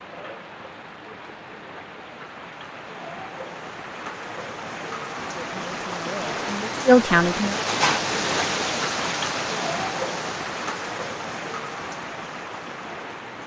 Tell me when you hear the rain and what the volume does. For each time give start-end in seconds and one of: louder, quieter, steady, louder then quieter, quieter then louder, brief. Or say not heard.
0.0-13.4 louder then quieter.